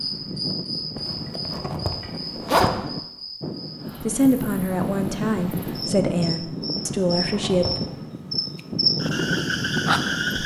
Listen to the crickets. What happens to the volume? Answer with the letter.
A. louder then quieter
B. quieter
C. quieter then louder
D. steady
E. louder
C.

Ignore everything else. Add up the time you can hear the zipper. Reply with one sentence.
The zipper can be heard for 3 seconds in total.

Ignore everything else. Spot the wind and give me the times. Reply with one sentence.
You can hear the wind from 0.0 to 10.4 s.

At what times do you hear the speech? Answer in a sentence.
The speech can be heard from 4.0 to 7.8 s.